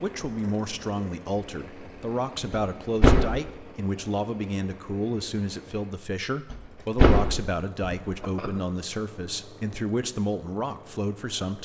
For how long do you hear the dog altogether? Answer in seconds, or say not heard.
not heard.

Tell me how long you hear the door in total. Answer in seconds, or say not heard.
3 s.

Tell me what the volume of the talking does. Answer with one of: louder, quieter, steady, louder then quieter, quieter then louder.
steady.